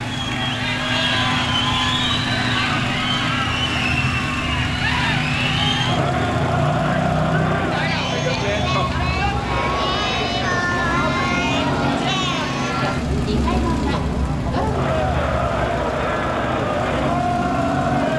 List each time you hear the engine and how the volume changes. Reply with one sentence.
The engine can be heard from 0.0 to 18.1 s, at a steady volume.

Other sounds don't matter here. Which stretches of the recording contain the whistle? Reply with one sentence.
You can't hear the whistle here.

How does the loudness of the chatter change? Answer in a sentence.
The loudness of the chatter stays about the same.